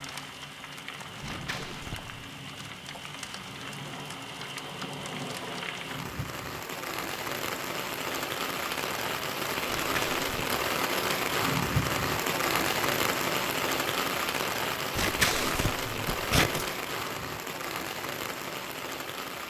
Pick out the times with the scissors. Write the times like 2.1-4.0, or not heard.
1.2-2.1, 9.7-10.4, 14.9-16.7.